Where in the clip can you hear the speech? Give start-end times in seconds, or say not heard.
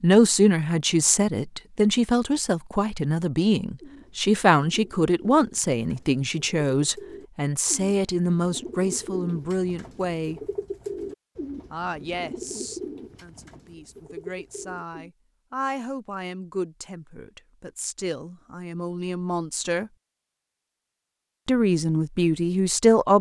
0.0-10.4, 11.7-19.9, 21.4-23.1.